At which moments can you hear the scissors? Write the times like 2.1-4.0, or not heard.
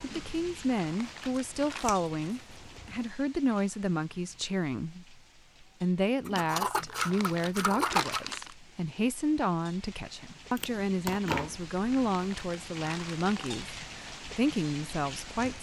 1.4-3.0, 6.2-8.3, 10.6-11.6.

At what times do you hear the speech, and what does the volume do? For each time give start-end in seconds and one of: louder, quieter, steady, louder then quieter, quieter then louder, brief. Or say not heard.
0.0-15.5 steady.